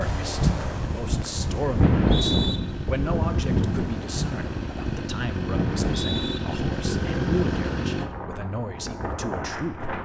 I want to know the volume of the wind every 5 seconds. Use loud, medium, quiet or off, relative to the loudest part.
loud, medium.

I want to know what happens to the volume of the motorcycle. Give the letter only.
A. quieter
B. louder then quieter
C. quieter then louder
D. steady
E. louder
E.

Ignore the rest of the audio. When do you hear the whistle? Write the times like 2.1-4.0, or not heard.
1.8-2.6, 5.7-6.4.